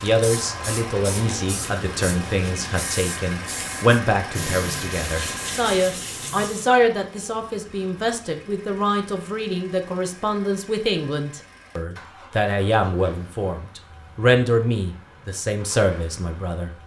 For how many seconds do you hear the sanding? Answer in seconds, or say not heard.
2 s.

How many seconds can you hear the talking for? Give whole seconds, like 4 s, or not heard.
17 s.